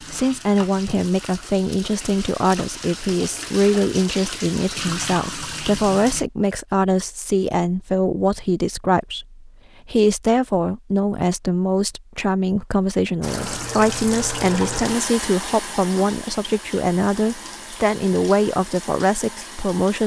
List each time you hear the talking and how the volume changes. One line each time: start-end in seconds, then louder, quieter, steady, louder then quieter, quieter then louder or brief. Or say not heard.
0.1-20.0 steady.